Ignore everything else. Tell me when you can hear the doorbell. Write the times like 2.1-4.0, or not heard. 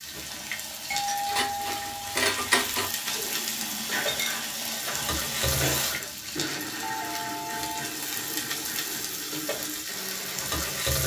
0.9-2.2, 6.8-7.9.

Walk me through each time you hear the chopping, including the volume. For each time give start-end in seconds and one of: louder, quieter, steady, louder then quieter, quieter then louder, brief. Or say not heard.
not heard.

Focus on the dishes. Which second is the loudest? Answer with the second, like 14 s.
2 s.